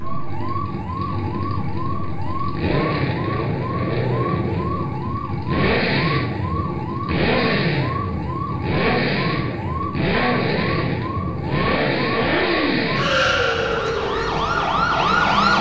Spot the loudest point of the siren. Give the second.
15 s.